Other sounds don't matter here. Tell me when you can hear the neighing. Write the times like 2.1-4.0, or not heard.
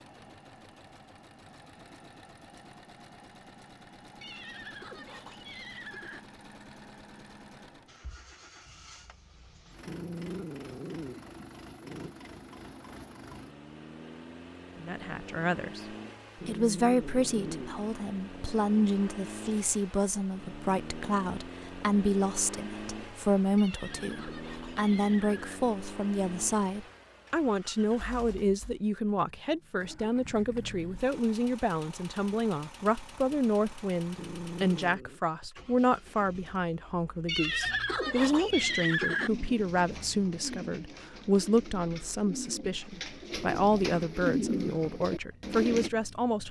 4.2-6.2, 23.6-25.6, 37.2-39.3.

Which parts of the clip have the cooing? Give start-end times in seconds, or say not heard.
38.2-45.9.